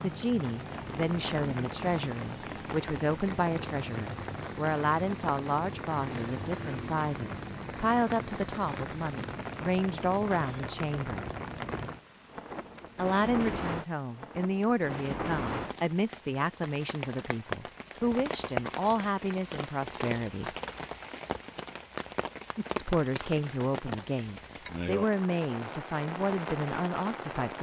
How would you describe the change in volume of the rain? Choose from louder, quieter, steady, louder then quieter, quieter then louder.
steady.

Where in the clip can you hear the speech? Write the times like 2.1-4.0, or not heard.
0.0-11.3, 12.9-20.6, 22.8-27.5.